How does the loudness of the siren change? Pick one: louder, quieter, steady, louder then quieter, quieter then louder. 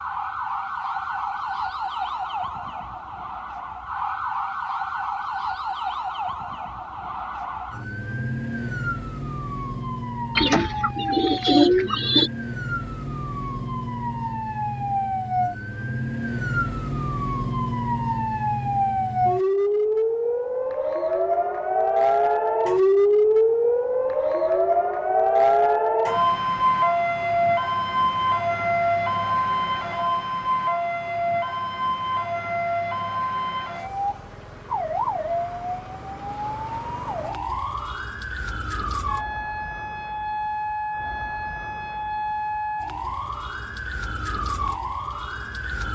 louder then quieter.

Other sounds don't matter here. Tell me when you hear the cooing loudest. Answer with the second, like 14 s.
12 s.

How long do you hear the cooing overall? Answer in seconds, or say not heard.
2 s.